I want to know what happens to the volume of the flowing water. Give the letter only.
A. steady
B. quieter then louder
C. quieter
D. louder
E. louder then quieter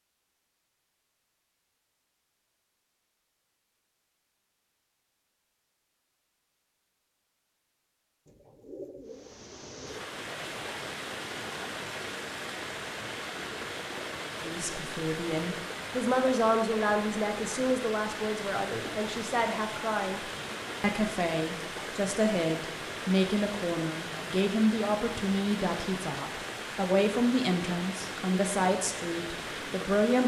A.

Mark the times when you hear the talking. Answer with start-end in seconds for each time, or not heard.
14.4-20.2, 20.8-30.2.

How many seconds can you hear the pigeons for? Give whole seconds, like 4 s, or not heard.
2 s.